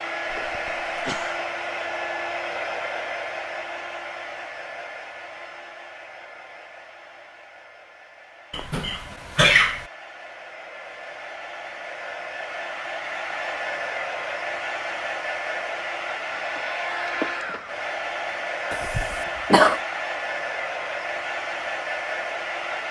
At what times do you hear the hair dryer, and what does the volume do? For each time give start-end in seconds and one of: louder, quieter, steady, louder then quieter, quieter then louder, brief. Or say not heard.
0.0-22.8 quieter then louder.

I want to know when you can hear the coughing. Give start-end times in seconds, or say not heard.
0.3-1.4, 8.5-9.8, 18.7-19.8.